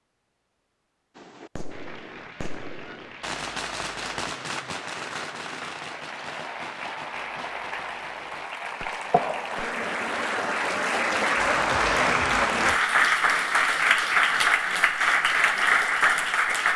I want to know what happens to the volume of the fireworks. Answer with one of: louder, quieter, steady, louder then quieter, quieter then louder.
louder then quieter.